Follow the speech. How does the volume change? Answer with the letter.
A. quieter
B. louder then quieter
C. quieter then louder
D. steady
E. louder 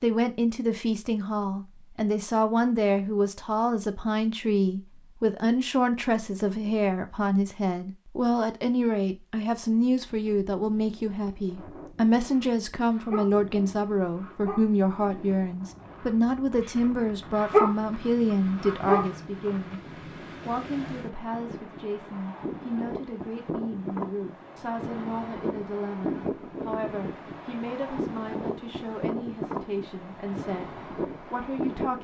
A.